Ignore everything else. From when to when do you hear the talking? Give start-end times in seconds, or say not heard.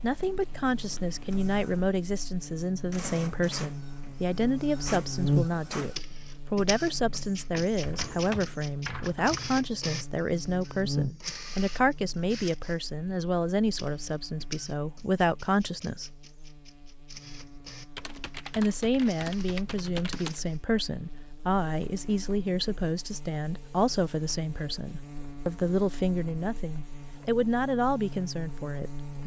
0.0-16.1, 18.6-29.2.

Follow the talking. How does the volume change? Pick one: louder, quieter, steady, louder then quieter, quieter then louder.
steady.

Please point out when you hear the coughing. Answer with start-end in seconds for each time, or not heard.
not heard.